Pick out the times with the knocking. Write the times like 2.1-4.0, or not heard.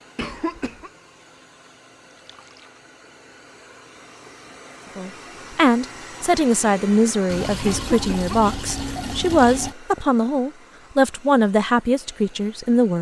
not heard.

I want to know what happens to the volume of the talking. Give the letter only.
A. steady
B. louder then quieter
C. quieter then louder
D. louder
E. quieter
A.